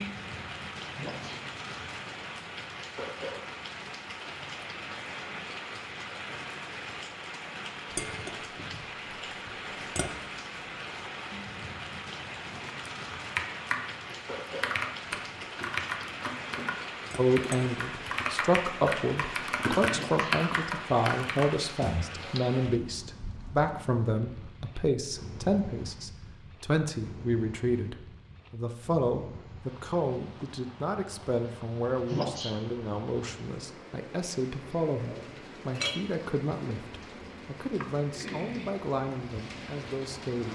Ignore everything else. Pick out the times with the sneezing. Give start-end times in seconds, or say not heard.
0.9-1.4, 19.9-20.4, 32.0-32.5.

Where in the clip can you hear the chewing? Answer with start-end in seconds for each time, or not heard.
not heard.